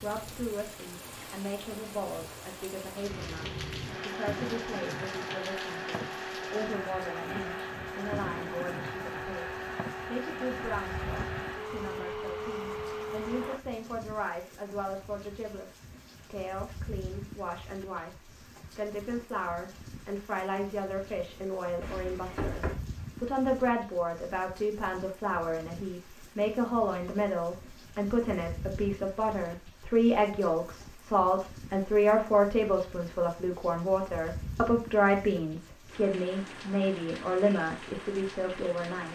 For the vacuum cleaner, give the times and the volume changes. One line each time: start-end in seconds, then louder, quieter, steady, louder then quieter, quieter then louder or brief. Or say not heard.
3.0-13.6 steady.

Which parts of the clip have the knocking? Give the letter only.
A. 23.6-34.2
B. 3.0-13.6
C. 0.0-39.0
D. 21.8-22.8
D.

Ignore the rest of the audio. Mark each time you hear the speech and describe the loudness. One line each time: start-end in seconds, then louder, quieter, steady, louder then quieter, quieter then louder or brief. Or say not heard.
0.0-39.0 louder.